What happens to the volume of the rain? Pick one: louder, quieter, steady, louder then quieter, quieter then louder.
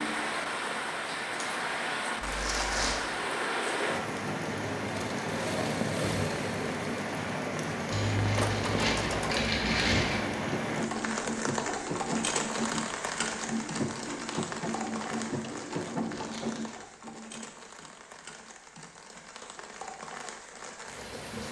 quieter.